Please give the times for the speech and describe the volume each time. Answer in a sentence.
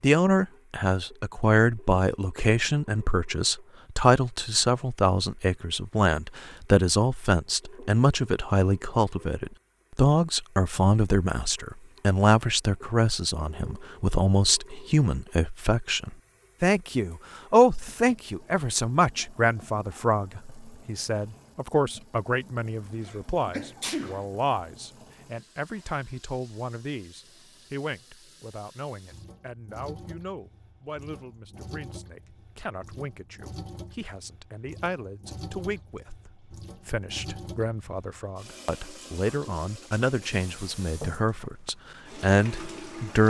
You can hear the speech from 0.0 to 43.2 s, getting quieter then louder.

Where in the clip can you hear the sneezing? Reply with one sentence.
The sneezing can be heard from 23.1 to 24.2 s.